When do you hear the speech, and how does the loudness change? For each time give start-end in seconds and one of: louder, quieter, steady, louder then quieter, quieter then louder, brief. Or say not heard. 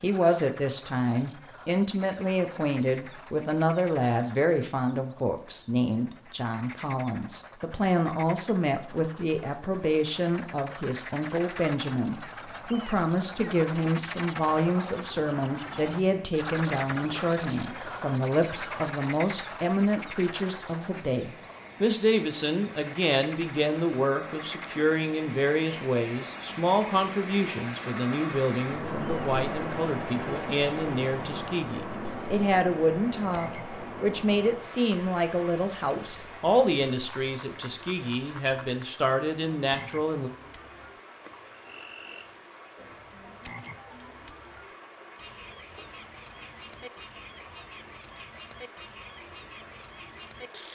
0.0-40.3 steady.